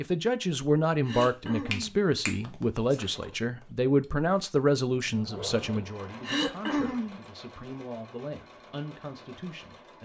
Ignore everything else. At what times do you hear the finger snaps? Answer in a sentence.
You can hear the finger snaps from 1.2 to 3.2 s.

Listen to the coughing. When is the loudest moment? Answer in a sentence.
The volume of the coughing peaks at 7 seconds.